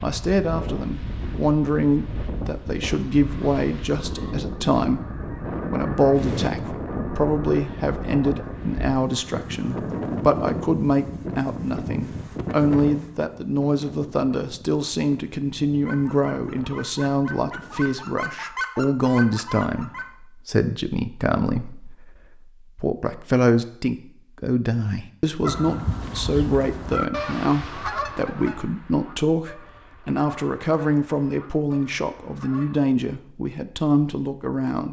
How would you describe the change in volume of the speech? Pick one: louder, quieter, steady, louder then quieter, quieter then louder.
steady.